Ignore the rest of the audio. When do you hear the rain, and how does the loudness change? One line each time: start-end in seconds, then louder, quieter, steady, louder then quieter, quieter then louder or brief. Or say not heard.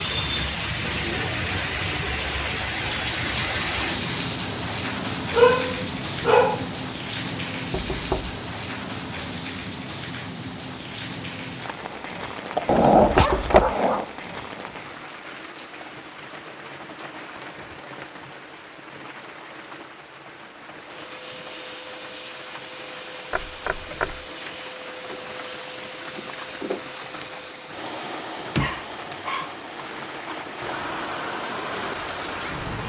0.0-32.8 quieter then louder.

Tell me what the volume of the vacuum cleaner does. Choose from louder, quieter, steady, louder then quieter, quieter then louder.
quieter.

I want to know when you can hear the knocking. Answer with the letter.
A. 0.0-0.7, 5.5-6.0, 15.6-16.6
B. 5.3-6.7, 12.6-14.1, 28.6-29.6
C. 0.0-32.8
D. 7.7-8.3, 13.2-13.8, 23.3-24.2
D.